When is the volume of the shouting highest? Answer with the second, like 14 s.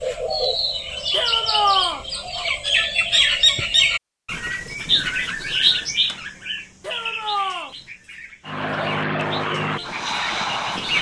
2 s.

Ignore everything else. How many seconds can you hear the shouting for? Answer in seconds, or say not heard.
2 s.